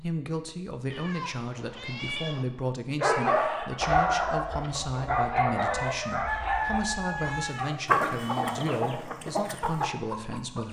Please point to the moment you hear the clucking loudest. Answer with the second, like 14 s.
8 s.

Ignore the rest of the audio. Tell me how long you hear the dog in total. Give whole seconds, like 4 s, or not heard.
5 s.